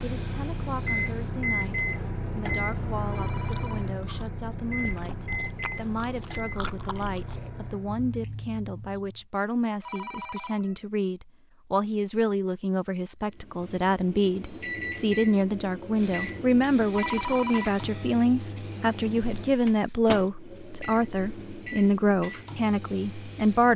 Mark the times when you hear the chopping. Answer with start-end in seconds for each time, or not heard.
not heard.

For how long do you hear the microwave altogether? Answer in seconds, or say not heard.
19 s.